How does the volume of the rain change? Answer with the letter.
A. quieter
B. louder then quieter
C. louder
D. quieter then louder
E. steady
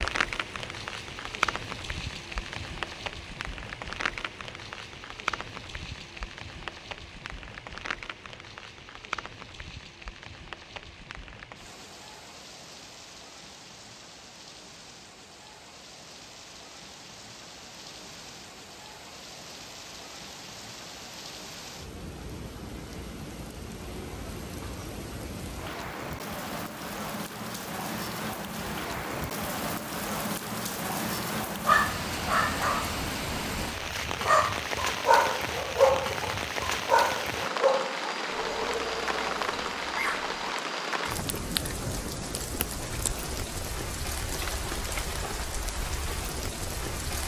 D.